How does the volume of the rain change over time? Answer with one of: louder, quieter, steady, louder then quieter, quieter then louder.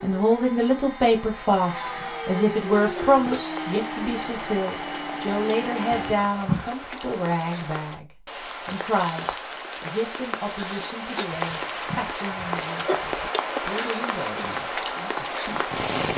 louder.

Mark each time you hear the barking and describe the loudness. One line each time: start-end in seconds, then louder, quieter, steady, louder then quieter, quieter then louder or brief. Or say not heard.
not heard.